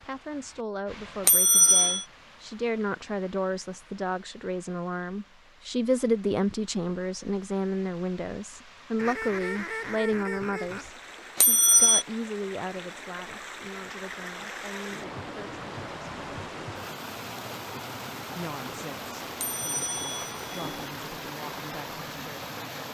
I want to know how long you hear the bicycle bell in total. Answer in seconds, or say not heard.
3 s.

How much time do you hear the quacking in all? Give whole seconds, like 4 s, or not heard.
2 s.